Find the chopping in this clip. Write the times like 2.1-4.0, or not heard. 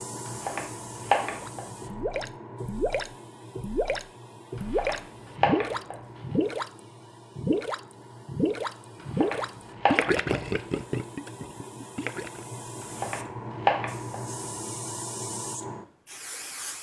0.2-1.6, 4.5-6.0, 9.0-10.3, 12.8-14.2.